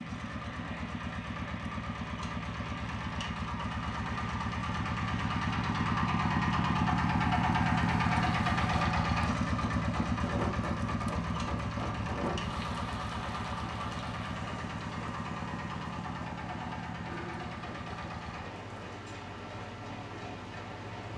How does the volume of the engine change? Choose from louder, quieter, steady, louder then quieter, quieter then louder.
louder then quieter.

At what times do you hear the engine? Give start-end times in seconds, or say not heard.
0.0-21.1.